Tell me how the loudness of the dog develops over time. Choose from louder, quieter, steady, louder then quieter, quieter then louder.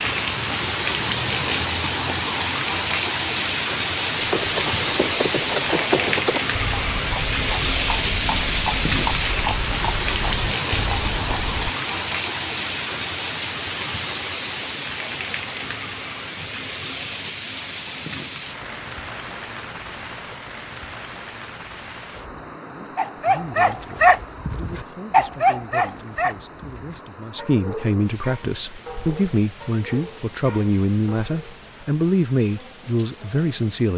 quieter.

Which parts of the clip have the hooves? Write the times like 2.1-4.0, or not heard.
4.2-11.7.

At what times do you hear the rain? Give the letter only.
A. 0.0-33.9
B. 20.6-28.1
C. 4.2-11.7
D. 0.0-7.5
A.